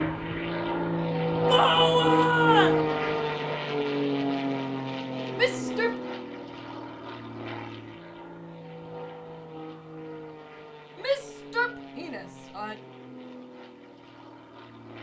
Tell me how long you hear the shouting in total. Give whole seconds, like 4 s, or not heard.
4 s.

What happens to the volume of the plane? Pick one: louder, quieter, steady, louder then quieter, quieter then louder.
quieter.